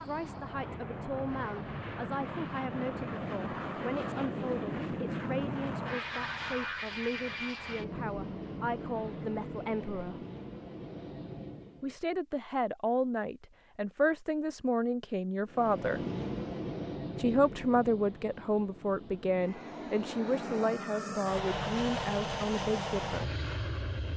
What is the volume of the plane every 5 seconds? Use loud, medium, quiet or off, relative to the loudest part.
loud, loud, medium, loud, loud.